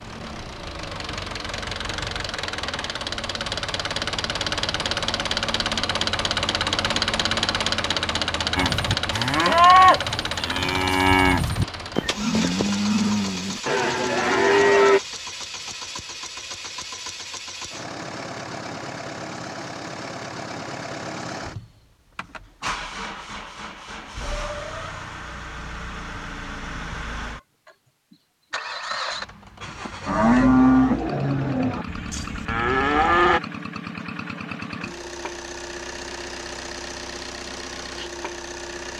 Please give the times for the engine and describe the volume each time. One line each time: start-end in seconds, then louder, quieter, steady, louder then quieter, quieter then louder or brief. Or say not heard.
0.0-38.9 quieter.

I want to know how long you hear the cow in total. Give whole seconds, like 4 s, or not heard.
10 s.